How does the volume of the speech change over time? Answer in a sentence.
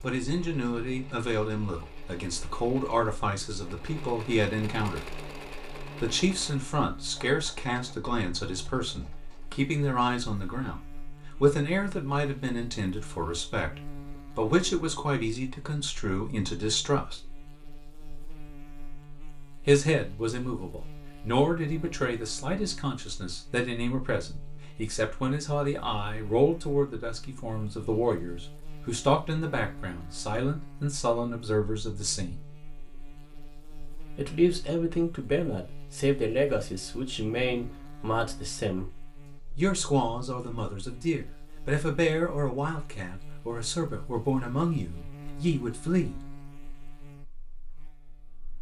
The volume of the speech stays about the same.